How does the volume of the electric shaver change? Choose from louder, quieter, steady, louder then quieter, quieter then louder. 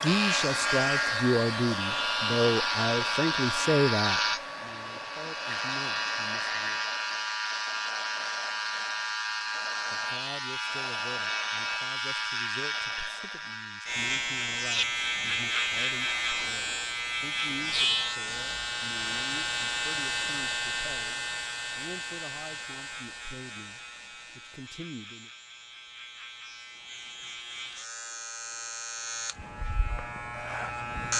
quieter.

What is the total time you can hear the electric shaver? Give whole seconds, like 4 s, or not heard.
31 s.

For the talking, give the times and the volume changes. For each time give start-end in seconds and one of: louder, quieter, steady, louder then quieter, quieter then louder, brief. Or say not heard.
0.0-6.8 quieter
9.9-25.3 steady.